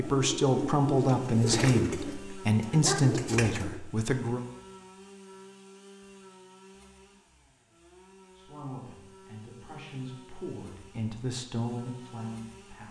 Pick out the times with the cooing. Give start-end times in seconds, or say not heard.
0.0-3.8.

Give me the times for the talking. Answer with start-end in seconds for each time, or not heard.
0.0-4.5, 8.3-12.8.